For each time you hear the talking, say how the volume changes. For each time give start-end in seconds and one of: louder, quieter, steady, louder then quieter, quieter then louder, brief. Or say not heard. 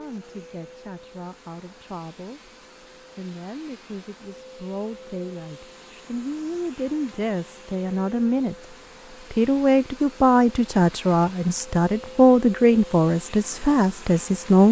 0.0-14.6 louder.